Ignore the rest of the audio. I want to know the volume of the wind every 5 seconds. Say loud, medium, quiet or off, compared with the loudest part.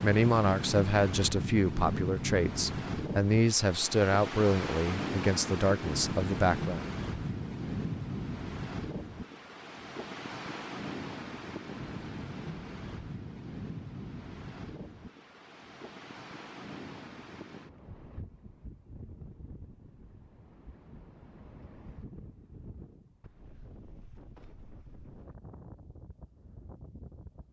loud, loud, medium, quiet, quiet, quiet.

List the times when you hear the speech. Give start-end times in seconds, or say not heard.
0.0-6.8.